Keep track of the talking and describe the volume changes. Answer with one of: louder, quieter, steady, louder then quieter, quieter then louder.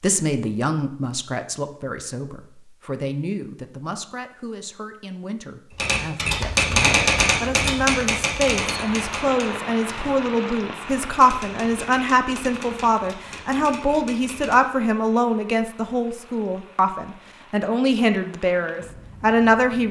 louder.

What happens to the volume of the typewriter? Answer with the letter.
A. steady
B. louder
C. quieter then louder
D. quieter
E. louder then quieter
D.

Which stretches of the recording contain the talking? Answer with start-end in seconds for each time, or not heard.
0.0-19.8.